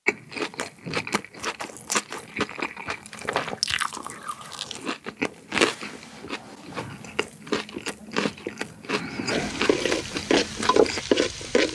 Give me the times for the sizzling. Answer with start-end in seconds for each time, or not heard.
9.3-11.6.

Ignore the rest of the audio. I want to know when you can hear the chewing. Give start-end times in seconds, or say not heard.
0.1-11.1.